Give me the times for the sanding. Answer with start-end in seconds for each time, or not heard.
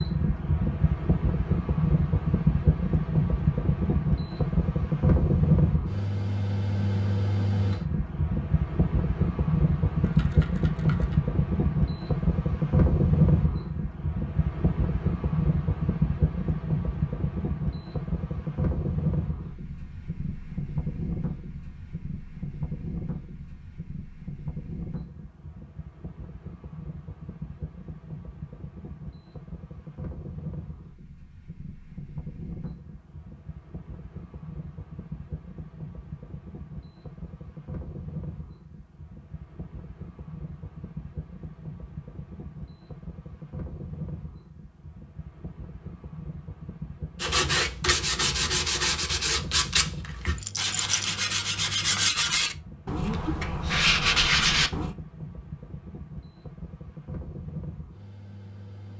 47.2-55.0.